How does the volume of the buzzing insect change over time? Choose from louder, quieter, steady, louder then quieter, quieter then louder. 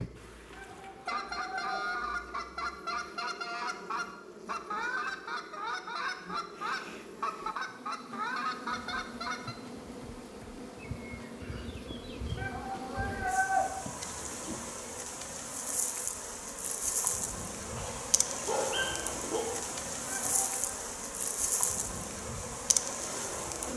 louder.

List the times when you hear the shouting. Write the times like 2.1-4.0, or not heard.
0.5-1.8, 12.3-13.7, 20.1-20.8.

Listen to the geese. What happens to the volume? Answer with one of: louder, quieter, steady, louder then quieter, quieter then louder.
steady.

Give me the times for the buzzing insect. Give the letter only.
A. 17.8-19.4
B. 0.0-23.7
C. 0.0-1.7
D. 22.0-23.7
B.